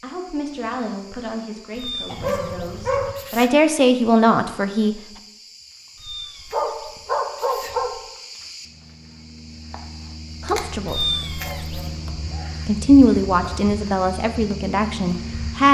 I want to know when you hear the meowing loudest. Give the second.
11 s.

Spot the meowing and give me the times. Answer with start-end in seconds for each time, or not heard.
1.8-3.5, 6.0-8.1, 10.8-11.9.